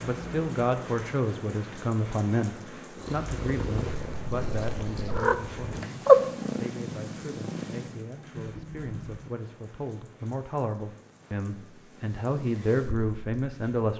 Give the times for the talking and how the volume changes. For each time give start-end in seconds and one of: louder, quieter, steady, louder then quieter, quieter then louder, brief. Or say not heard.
0.0-13.9 quieter then louder.